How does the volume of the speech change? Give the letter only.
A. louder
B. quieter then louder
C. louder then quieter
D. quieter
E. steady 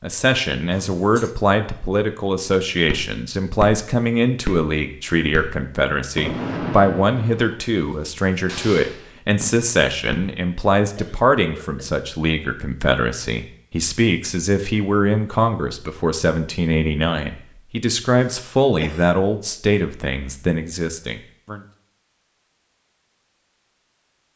E.